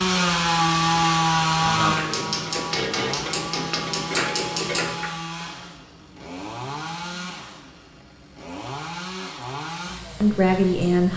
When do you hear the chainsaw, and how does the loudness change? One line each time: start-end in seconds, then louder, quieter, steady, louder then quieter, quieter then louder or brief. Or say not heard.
0.0-11.1 quieter.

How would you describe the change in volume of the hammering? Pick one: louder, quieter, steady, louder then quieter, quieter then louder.
louder.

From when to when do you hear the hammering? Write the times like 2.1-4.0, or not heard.
0.1-5.2.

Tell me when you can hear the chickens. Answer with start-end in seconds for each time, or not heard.
not heard.